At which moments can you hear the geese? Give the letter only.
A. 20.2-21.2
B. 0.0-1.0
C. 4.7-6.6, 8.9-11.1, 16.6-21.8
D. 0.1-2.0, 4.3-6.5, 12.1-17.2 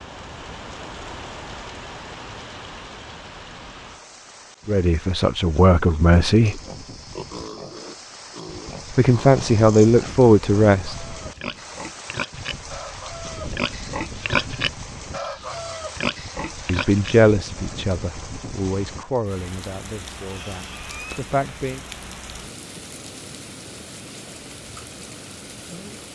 A.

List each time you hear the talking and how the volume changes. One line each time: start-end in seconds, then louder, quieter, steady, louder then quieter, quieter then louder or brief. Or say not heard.
4.7-6.6 brief
8.9-11.1 brief
16.6-21.8 quieter then louder.